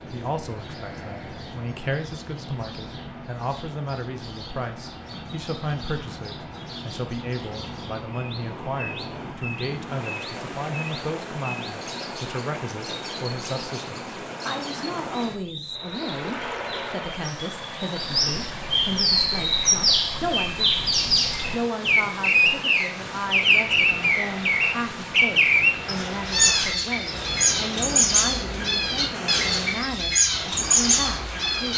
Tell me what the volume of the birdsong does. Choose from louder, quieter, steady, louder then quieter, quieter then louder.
louder.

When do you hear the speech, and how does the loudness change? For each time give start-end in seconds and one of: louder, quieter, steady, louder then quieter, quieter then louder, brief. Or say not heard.
0.1-20.9 steady
21.5-31.7 steady.